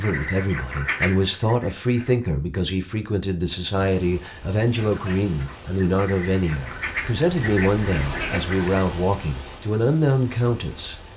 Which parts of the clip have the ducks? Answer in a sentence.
The ducks can be heard from 0.0 to 2.2 s and from 4.7 to 8.8 s.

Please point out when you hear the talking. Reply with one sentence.
You can hear the talking from 0.0 to 10.9 s.